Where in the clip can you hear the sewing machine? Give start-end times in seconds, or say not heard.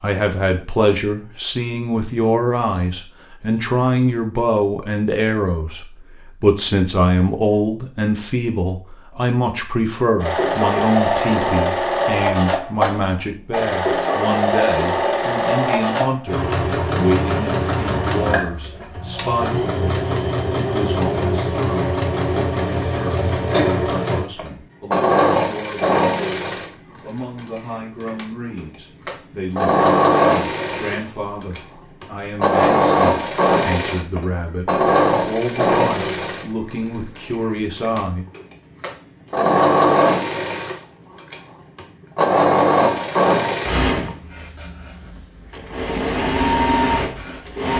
10.2-47.7.